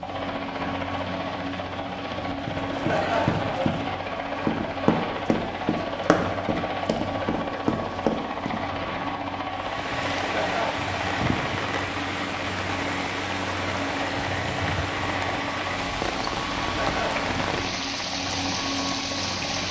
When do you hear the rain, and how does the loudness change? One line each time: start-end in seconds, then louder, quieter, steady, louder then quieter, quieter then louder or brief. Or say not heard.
9.5-19.6 steady.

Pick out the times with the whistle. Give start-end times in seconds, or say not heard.
not heard.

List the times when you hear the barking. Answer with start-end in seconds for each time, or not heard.
not heard.